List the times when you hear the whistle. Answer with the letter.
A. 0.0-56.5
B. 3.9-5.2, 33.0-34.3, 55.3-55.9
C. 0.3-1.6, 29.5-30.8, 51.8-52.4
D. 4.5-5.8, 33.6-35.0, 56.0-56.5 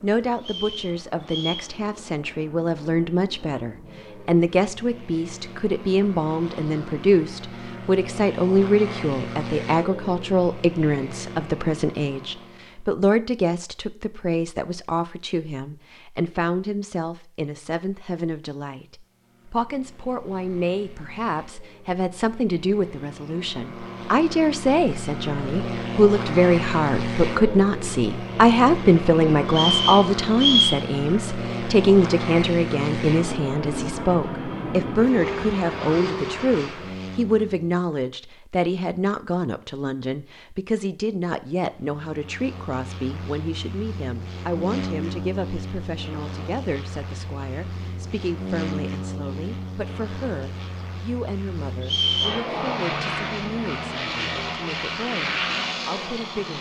C.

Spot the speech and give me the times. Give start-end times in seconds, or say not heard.
0.0-56.5.